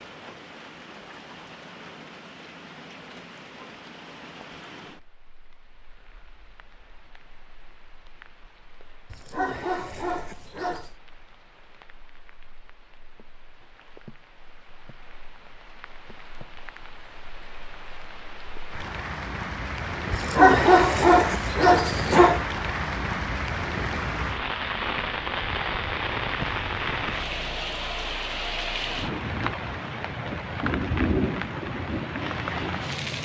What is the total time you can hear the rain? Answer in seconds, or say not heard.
33 s.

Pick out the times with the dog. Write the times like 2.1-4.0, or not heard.
9.1-10.9, 20.1-22.4.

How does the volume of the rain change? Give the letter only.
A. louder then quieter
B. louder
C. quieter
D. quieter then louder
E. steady
D.